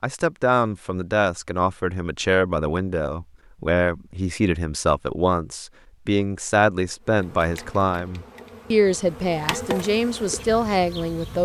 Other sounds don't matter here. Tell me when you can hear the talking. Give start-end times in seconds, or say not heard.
0.0-11.4.